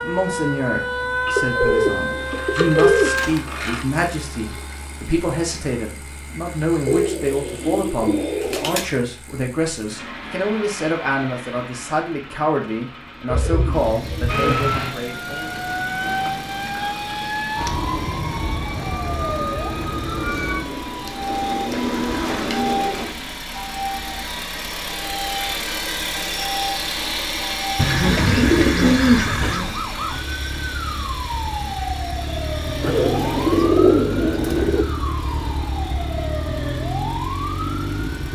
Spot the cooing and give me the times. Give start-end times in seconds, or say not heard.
1.2-3.9, 6.8-8.8, 13.2-14.9, 20.1-23.1, 27.8-29.8, 32.8-34.9.